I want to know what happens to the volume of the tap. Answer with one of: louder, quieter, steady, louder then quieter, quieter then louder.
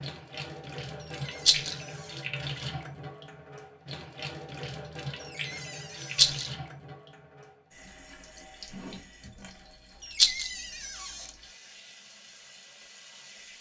quieter.